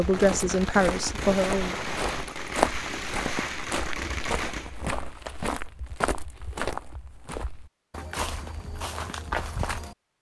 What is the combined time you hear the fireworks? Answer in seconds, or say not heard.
5 s.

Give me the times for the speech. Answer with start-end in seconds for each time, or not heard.
0.0-1.8.